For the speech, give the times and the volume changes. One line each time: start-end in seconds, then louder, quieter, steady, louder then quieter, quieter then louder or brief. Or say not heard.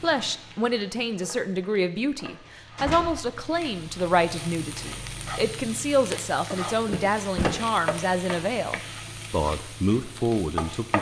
0.0-10.9 steady.